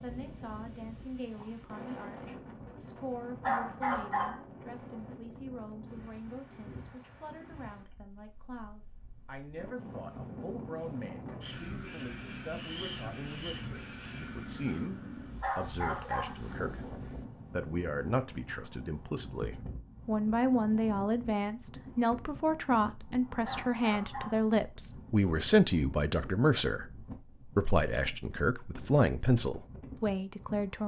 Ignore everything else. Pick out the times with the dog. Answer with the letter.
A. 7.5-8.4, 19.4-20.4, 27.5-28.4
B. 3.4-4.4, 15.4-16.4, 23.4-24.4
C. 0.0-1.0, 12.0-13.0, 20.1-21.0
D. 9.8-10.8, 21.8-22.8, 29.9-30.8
B.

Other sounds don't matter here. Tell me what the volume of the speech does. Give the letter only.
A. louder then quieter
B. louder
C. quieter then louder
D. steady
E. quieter
B.